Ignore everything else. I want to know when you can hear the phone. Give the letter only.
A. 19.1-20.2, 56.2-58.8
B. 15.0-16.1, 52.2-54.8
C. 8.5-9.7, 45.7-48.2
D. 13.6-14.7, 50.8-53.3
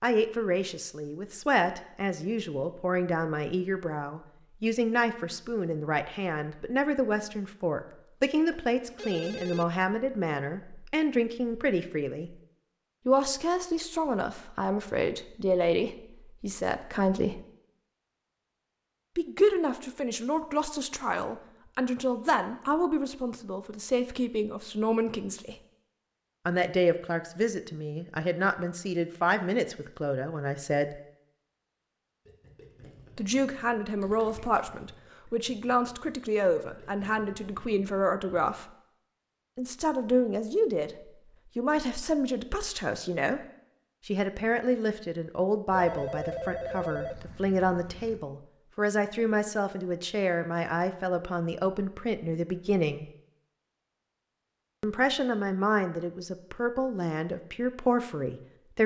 C.